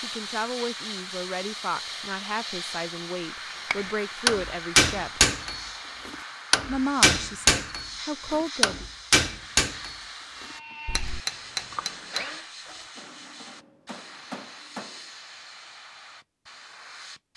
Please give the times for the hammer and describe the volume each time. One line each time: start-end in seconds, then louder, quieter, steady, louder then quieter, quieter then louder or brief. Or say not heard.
3.7-15.1 quieter.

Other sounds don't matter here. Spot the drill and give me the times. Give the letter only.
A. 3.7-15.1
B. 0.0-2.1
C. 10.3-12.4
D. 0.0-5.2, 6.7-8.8
C.